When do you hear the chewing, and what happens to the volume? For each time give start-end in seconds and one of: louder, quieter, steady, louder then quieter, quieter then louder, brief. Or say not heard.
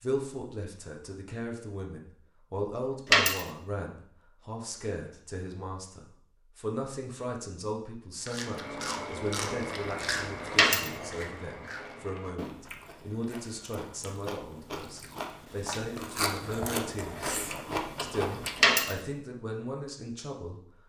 8.2-18.9 quieter then louder.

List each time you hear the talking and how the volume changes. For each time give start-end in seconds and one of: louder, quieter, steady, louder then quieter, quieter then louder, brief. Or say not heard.
0.0-17.4 steady
18.0-20.6 brief.